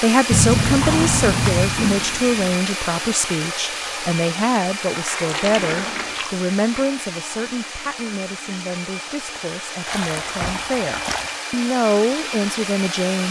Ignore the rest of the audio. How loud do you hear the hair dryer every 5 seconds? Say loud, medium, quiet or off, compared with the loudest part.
loud, medium, loud.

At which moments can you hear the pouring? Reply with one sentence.
You can hear the pouring from 0.3 to 1.8 s, from 5.2 to 6.3 s and from 9.8 to 11.3 s.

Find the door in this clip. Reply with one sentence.
The door can be heard from 0.8 to 2.6 s, from 4.8 to 7.0 s and from 10.2 to 11.2 s.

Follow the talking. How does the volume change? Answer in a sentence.
The loudness of the talking goes down, then up.